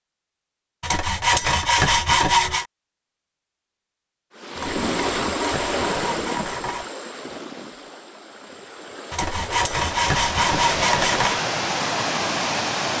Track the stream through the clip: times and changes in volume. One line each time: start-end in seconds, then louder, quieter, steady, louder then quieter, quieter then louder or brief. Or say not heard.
4.3-12.9 quieter then louder.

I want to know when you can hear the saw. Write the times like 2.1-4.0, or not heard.
0.8-2.6, 4.5-6.9, 9.1-11.4.